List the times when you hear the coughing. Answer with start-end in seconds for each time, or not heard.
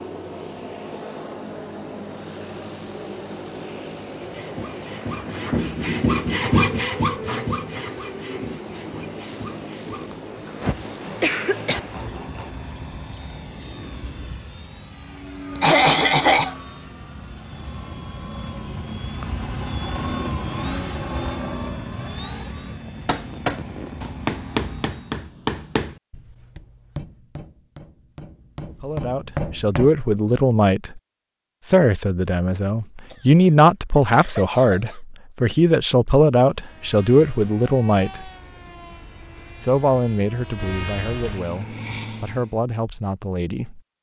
10.6-11.8, 15.6-16.6, 33.1-35.0.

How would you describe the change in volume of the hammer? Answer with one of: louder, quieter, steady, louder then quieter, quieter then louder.
quieter then louder.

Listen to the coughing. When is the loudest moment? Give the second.
16 s.